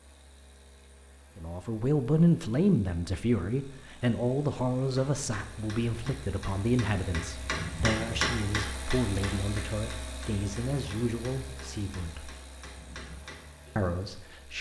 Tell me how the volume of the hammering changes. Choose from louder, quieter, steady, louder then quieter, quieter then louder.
louder then quieter.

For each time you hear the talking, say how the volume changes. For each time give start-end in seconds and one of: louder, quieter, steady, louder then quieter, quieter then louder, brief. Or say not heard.
1.4-12.3 quieter
13.8-14.5 brief.